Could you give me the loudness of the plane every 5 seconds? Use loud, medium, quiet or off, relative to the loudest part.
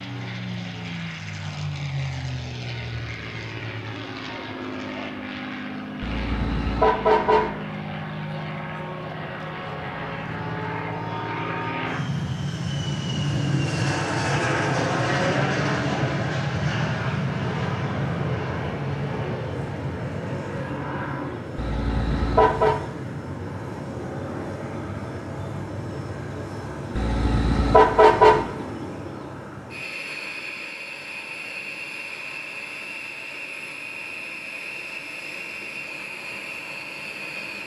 medium, medium, loud, loud, medium, medium, medium, medium.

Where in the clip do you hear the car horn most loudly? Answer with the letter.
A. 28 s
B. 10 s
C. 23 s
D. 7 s
A.